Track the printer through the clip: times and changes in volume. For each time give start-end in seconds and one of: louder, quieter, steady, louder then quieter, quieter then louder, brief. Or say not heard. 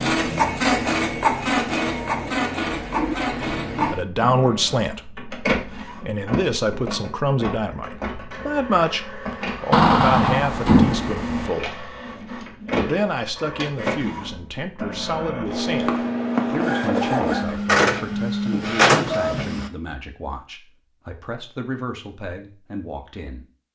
0.0-19.7 quieter then louder.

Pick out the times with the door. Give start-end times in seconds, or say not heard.
9.7-11.5.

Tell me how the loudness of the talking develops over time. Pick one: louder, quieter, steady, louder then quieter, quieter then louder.
quieter.